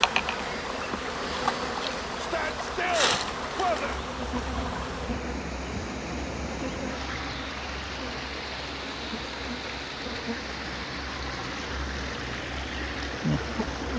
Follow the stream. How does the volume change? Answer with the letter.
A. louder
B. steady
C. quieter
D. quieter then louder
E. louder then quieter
B.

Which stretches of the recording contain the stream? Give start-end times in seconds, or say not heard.
0.0-13.9.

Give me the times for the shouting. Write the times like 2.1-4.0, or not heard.
2.1-4.0.